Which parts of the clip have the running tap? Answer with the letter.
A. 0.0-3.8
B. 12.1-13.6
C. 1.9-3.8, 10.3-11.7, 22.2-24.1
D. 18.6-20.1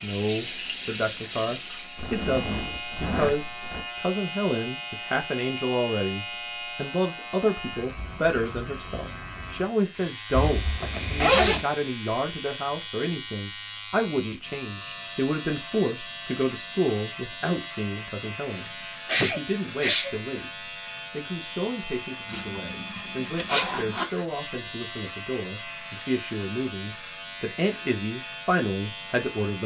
A.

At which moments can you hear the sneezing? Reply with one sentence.
The sneezing can be heard from 18.6 to 20.1 s.